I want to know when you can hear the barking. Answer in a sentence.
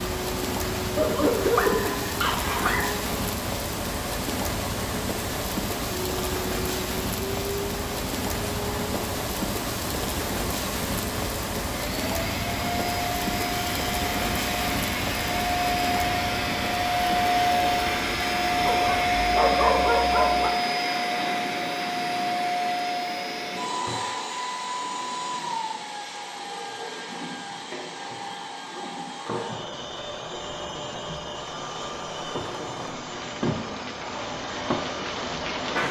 The barking can be heard from 0.9 to 2.9 s and from 18.6 to 20.5 s.